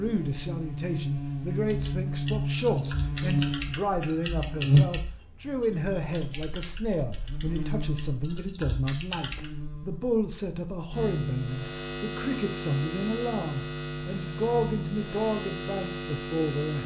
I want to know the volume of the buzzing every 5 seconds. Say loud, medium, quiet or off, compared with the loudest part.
loud, medium, medium, medium.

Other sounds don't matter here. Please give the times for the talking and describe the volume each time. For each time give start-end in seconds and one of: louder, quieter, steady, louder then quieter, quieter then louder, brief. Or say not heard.
0.0-16.8 steady.